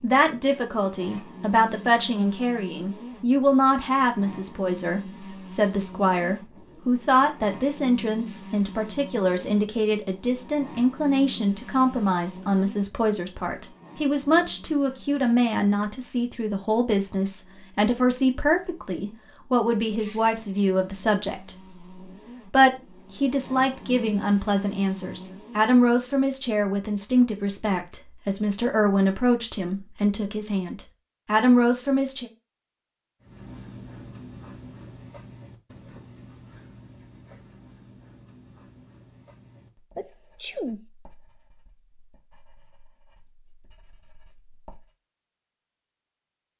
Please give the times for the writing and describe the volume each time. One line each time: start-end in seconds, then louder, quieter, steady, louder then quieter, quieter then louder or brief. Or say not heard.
33.2-44.9 quieter.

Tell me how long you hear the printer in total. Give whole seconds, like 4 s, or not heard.
not heard.